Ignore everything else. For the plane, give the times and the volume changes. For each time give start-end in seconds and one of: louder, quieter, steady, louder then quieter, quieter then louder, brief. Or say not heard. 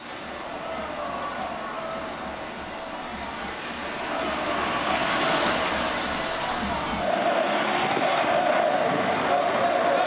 not heard.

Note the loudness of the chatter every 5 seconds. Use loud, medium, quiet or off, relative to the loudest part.
medium, loud.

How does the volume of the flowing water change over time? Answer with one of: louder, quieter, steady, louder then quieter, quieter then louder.
louder then quieter.